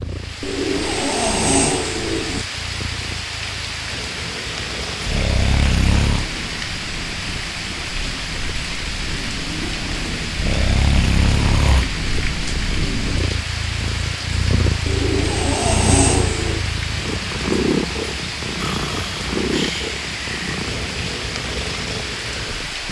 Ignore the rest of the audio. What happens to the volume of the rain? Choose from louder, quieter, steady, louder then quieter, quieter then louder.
steady.